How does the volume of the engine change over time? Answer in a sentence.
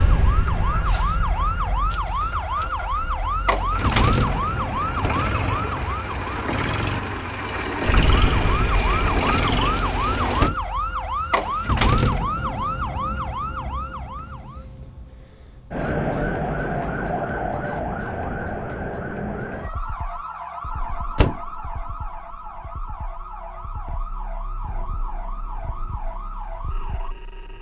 The volume of the engine goes up.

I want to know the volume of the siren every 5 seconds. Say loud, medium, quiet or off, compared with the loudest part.
loud, loud, loud, loud, medium, quiet.